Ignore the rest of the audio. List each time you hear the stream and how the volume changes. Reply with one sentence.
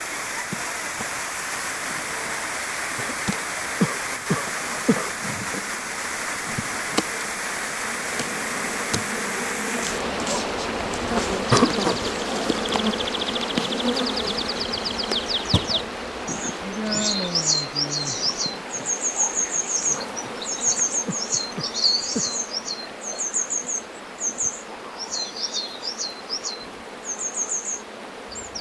You can hear the stream from 0.0 to 28.5 s, getting quieter.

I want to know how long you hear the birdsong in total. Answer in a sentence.
You can hear the birdsong for 17 seconds altogether.